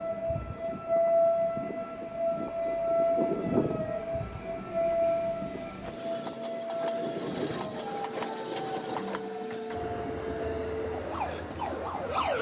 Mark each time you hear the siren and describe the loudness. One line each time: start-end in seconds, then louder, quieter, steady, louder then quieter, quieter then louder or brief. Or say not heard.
0.0-12.3 quieter.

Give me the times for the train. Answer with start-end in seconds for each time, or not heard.
0.0-12.3.